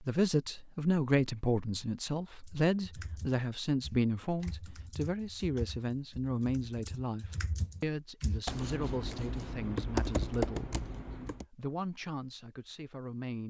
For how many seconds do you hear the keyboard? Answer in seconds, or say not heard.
9 s.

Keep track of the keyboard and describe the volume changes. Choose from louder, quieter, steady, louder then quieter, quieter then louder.
louder.